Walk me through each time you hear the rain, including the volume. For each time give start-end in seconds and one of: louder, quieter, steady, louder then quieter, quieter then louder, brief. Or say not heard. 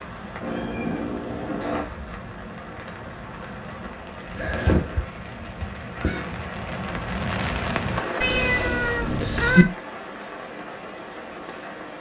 0.0-11.9 louder then quieter.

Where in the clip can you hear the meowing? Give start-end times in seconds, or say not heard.
0.4-1.9, 4.3-6.2, 8.2-9.7.